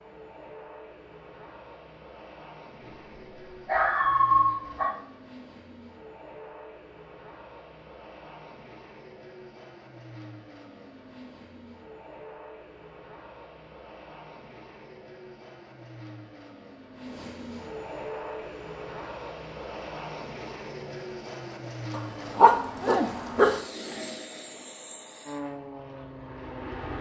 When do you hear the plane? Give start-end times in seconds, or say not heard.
0.0-26.9.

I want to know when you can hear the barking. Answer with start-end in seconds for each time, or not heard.
2.8-4.9, 21.9-23.6.